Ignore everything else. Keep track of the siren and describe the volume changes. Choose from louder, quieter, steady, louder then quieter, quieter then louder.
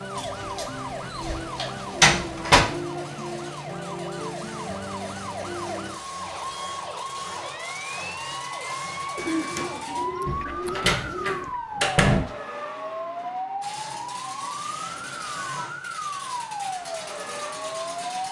steady.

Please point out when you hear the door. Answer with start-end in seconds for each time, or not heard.
0.1-2.6, 10.2-12.2.